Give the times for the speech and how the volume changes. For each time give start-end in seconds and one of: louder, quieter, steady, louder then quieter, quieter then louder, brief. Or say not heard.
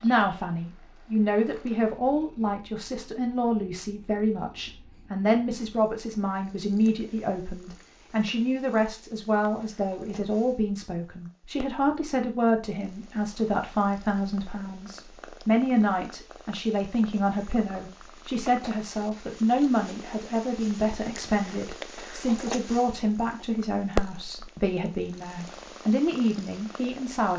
0.0-27.3 steady.